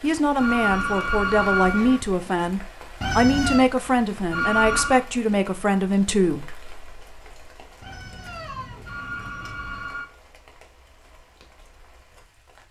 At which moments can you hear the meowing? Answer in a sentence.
You can hear the meowing from 3.0 to 3.7 s and from 7.8 to 9.8 s.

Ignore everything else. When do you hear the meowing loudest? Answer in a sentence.
The loudest moment of the meowing is at 3 seconds.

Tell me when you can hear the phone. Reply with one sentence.
The phone can be heard from 0.3 to 2.0 s, from 4.3 to 5.0 s and from 8.8 to 10.1 s.